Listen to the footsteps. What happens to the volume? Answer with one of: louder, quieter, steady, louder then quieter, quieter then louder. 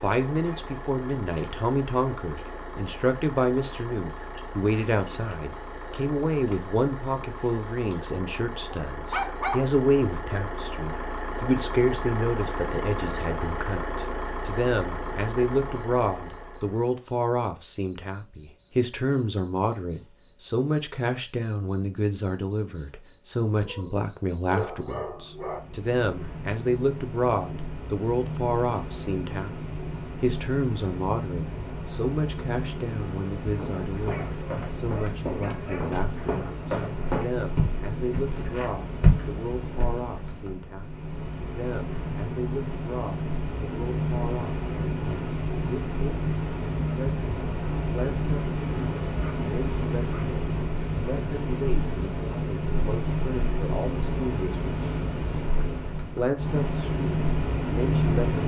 louder.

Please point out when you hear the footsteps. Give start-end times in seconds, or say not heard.
33.5-39.9.